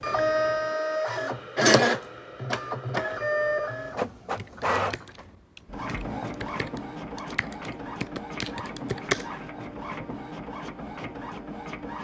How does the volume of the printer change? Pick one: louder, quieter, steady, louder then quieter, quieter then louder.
quieter.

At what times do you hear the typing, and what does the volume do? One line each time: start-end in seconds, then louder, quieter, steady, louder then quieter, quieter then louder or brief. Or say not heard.
4.3-9.3 quieter then louder.